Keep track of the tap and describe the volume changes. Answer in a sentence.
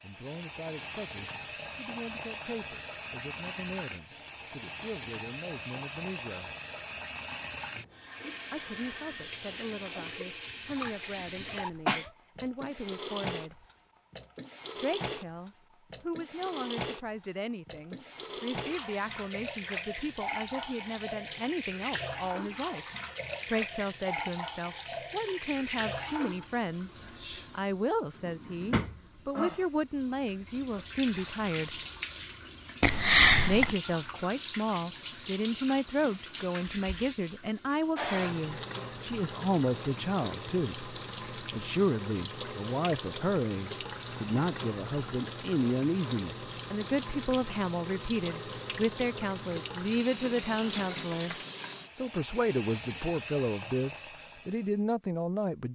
The volume of the tap stays about the same.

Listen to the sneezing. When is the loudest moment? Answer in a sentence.
The volume of the sneezing peaks at 33 seconds.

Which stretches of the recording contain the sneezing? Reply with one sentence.
The sneezing can be heard from 11.1 to 12.1 s and from 32.8 to 33.8 s.